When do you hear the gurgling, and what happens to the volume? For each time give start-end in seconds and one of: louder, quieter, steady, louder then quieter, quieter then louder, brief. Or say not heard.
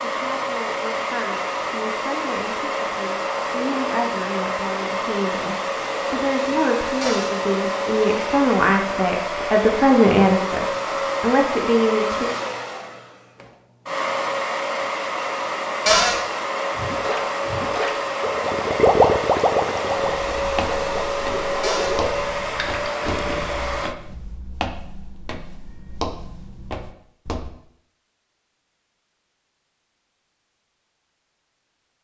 16.7-23.5 louder then quieter.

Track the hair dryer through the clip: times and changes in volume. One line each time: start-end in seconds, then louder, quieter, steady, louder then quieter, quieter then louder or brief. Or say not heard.
0.0-23.9 steady.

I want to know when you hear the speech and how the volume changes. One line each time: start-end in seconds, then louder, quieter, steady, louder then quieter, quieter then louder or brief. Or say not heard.
0.0-12.3 louder.